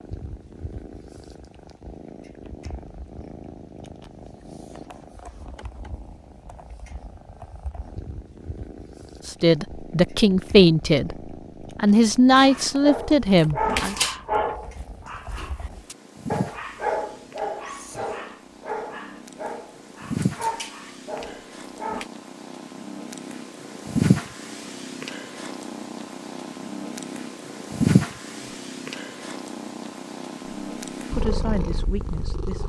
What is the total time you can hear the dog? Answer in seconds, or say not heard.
10 s.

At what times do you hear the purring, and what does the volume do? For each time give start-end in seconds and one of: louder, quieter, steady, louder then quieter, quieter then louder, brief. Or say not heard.
0.0-32.6 louder.